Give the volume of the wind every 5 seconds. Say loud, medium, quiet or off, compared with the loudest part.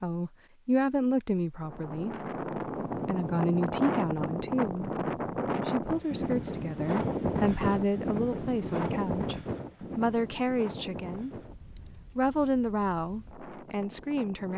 loud, loud, quiet.